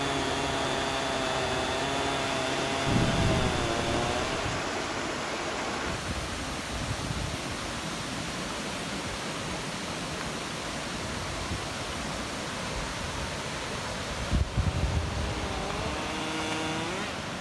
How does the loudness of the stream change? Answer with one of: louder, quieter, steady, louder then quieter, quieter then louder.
steady.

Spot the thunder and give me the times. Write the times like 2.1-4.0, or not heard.
2.9-4.6.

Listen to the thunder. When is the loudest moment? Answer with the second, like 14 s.
3 s.